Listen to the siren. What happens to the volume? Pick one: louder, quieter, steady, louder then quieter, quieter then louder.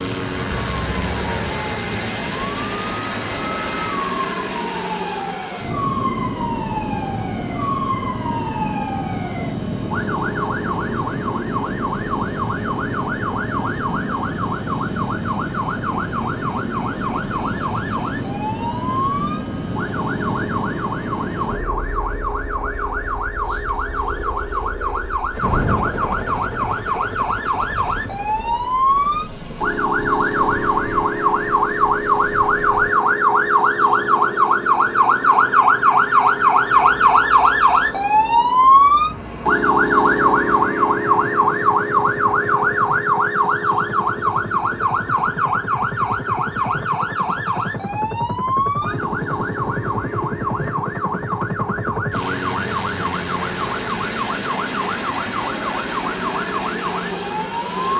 louder then quieter.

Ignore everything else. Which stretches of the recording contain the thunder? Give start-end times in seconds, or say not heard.
25.4-26.8.